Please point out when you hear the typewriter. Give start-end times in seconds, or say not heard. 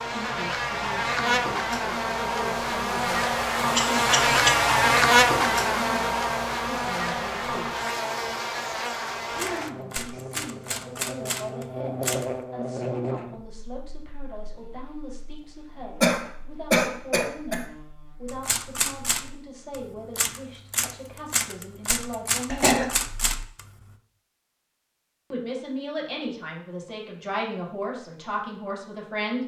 9.3-12.3, 18.2-23.7.